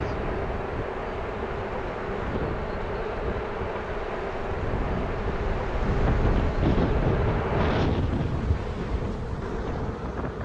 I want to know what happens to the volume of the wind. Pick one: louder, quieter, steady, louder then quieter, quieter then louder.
louder then quieter.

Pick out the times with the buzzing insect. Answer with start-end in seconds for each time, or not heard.
0.0-10.3.